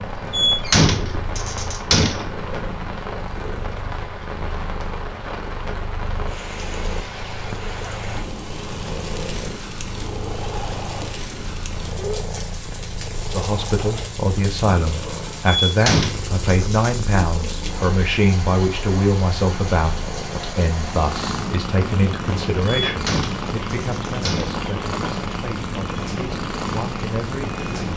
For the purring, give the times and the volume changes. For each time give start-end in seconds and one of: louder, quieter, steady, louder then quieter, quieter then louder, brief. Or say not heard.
0.0-27.9 louder.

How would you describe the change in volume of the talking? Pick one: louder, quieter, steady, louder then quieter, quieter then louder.
quieter.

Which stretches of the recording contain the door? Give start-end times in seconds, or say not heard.
0.3-2.3, 15.7-16.9, 22.9-24.6.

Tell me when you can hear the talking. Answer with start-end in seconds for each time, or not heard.
13.3-27.9.